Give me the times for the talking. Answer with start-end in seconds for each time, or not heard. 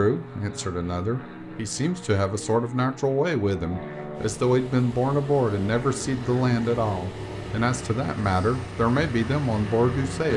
0.0-10.3.